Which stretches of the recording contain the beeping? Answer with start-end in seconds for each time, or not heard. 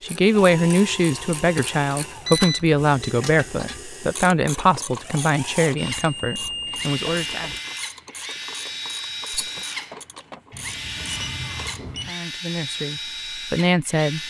2.2-3.1, 5.8-7.6, 10.5-12.2.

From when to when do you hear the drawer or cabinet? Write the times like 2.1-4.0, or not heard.
not heard.